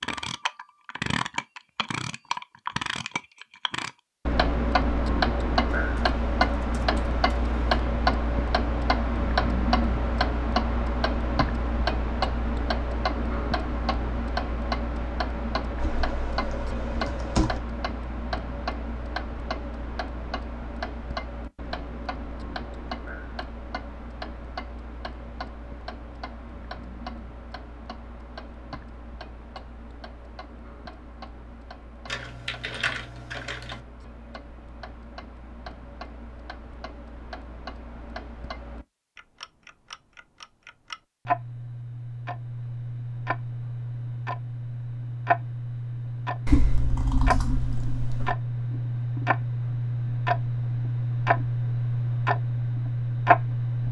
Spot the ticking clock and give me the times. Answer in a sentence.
The ticking clock can be heard from 0.0 to 53.8 s.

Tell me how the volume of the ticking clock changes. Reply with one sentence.
The loudness of the ticking clock goes down, then up.